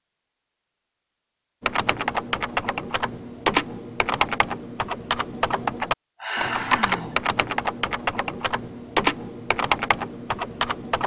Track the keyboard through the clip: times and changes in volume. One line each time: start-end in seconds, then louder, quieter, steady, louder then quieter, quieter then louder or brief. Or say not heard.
1.6-11.0 steady.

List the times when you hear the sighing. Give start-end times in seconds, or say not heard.
5.8-7.2.